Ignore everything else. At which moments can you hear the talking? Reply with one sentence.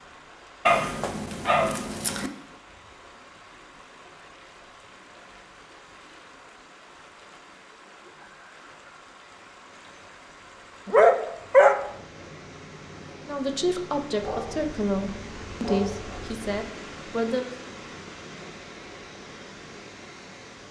The talking can be heard from 13.2 to 17.6 s.